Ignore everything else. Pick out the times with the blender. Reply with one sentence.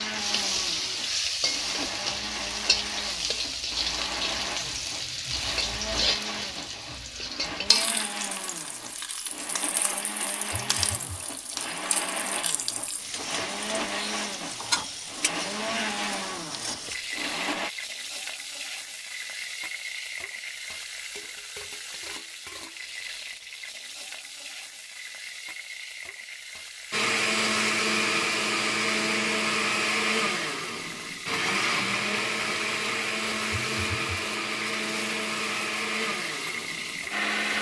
The blender can be heard from 0.0 to 17.7 s and from 26.9 to 37.5 s.